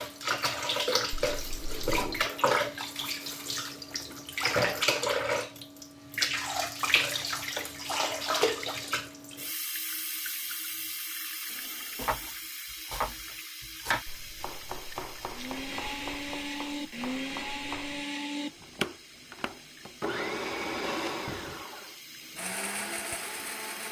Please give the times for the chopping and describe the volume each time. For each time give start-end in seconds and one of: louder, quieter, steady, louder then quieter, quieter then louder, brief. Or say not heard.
11.9-18.1 quieter.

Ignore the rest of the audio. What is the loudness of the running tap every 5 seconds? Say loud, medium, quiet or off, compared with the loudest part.
loud, loud, medium, quiet, quiet.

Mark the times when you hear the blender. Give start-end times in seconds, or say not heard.
15.3-23.8.